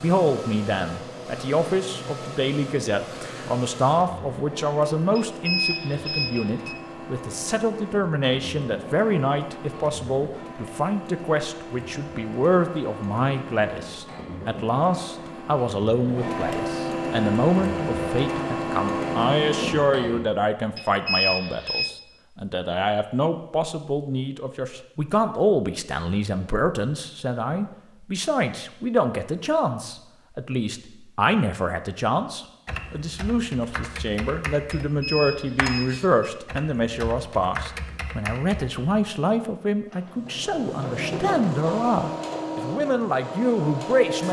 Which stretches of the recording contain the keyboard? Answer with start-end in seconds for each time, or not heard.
32.6-38.8.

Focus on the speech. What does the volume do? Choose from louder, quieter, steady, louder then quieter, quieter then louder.
steady.